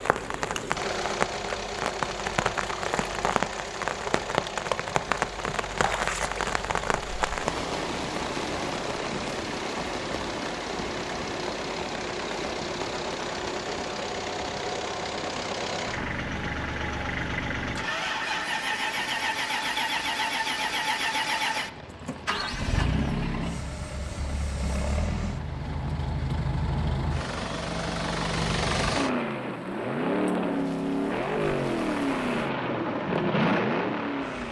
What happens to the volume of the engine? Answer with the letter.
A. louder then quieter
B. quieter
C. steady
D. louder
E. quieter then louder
D.